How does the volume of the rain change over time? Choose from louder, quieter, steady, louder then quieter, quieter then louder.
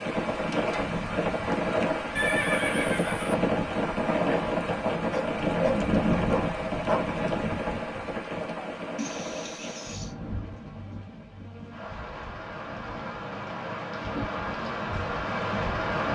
quieter then louder.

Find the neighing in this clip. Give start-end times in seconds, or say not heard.
2.1-3.4, 8.9-10.2.